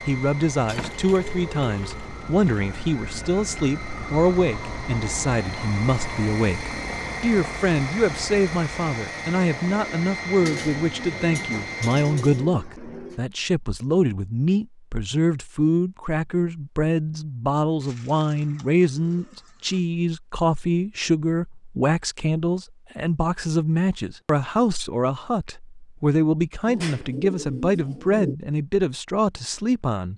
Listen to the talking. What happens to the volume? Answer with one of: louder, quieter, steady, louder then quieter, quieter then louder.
steady.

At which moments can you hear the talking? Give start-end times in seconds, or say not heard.
0.1-30.1.